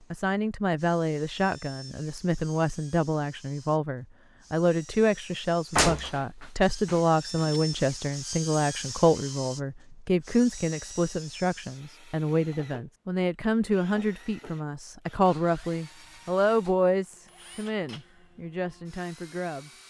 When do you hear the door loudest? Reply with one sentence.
The volume of the door peaks at 6 seconds.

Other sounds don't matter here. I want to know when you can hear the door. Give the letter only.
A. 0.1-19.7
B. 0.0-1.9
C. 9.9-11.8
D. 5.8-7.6
D.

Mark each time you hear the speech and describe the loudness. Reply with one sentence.
The speech can be heard from 0.1 to 19.7 s, at a steady volume.